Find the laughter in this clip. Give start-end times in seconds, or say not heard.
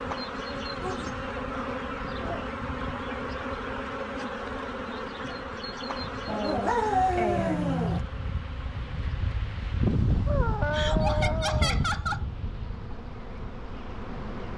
10.7-12.2.